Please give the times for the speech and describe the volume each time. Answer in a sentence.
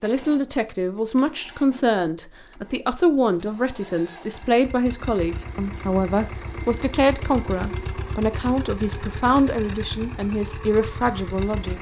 The speech can be heard from 0.0 to 11.7 s, at a steady volume.